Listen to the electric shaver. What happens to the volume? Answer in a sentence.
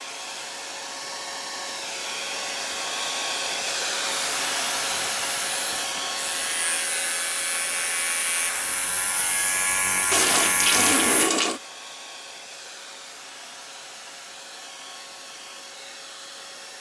The loudness of the electric shaver goes up.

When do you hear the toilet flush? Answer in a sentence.
The toilet flush can be heard from 10.1 to 11.6 s.